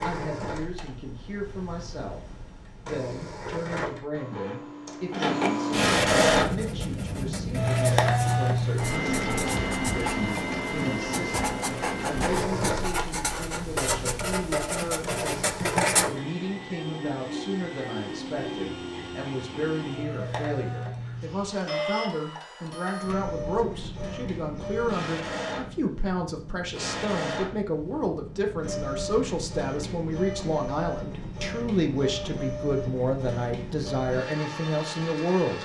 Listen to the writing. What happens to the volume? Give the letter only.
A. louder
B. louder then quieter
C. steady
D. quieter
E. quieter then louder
A.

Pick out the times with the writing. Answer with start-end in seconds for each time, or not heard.
6.4-16.1.